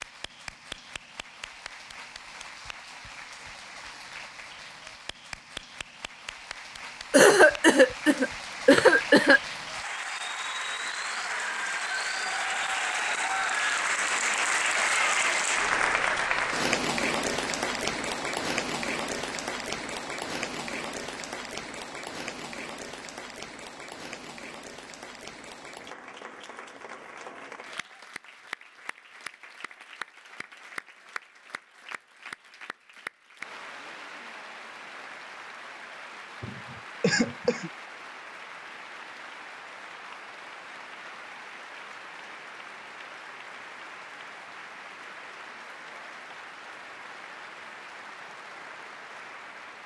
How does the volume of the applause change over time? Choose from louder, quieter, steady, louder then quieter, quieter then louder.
louder then quieter.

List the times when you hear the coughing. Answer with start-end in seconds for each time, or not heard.
7.1-9.4, 36.4-37.7.